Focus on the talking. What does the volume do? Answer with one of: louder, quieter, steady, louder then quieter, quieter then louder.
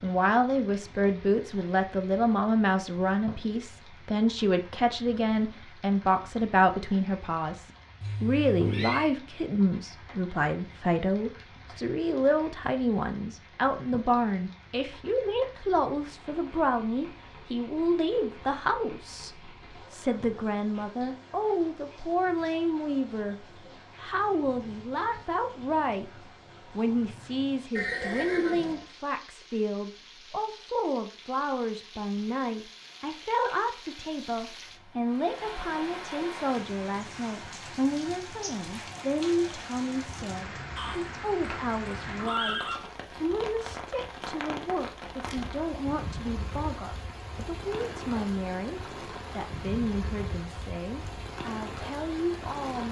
quieter.